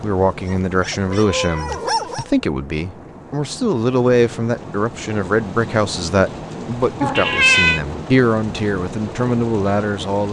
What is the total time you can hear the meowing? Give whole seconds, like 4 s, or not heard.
2 s.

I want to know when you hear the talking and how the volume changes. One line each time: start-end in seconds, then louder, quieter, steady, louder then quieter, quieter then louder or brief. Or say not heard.
0.0-10.2 steady.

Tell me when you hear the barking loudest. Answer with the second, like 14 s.
2 s.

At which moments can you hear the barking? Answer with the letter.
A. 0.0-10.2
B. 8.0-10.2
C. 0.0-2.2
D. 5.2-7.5
C.